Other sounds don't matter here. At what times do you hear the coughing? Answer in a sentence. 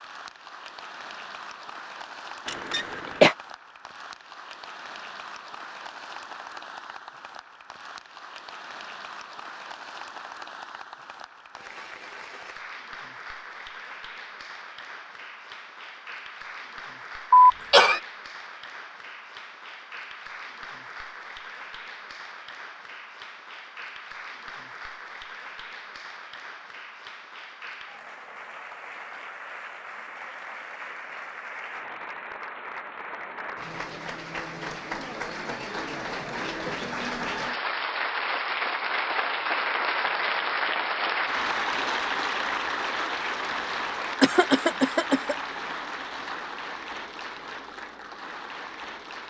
You can hear the coughing from 2.5 to 3.4 s, from 17.3 to 18.0 s and from 44.2 to 45.4 s.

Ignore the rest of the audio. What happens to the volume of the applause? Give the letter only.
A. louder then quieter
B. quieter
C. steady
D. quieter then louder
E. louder
E.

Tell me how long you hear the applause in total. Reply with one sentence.
The applause can be heard for 49 seconds in total.